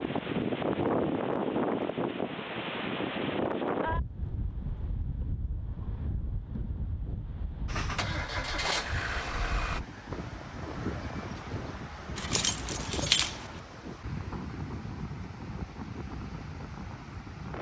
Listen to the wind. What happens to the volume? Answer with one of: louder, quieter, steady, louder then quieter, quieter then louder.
quieter.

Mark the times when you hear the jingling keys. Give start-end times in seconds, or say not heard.
12.2-13.5.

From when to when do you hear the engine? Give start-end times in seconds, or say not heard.
7.7-9.8.